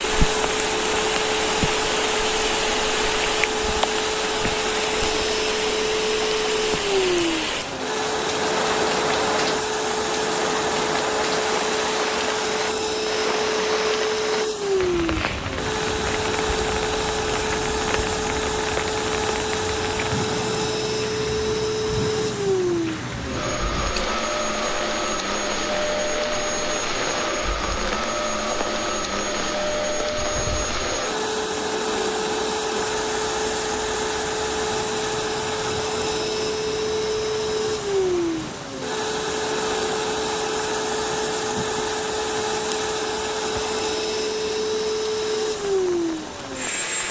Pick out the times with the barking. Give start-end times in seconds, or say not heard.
not heard.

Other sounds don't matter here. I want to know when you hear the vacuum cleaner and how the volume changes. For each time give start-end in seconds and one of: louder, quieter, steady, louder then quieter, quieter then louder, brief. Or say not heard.
0.0-47.0 steady.